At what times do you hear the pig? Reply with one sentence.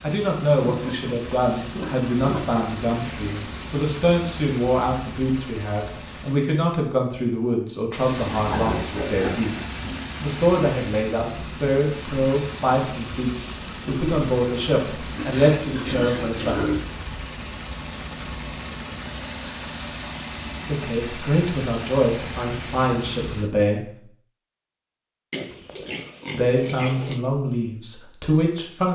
You can hear the pig from 0.6 to 2.6 s, from 8.2 to 10.0 s, from 15.2 to 16.9 s and from 25.3 to 27.2 s.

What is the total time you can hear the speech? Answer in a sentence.
The speech can be heard for 22 seconds in total.